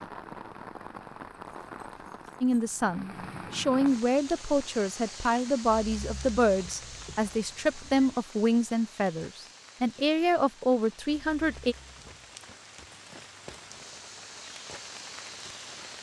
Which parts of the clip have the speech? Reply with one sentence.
You can hear the speech from 2.4 to 11.8 s.